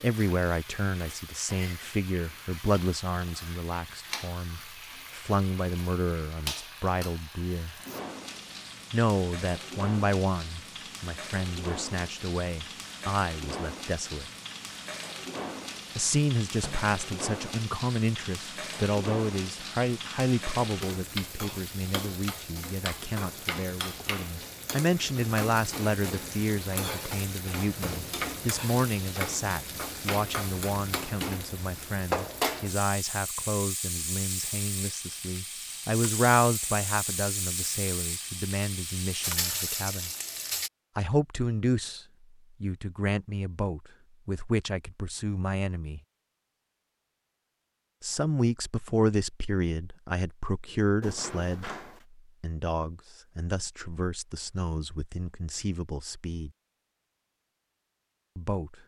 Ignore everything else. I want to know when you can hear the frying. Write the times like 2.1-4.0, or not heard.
0.0-40.7.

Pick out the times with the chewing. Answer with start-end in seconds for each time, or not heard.
not heard.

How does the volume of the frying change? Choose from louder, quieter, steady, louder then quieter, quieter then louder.
louder.